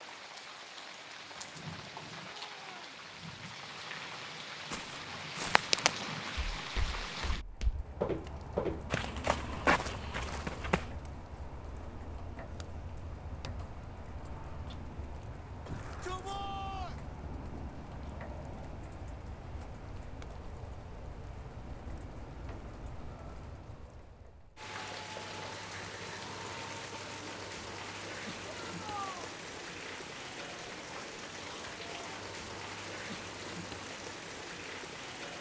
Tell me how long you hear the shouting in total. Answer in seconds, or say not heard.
3 s.